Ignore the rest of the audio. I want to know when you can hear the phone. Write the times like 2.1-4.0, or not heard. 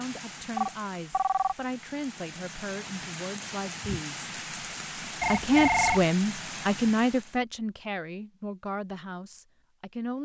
0.6-1.6, 5.2-6.0.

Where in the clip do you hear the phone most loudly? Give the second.
6 s.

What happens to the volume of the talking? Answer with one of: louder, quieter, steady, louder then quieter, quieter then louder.
louder then quieter.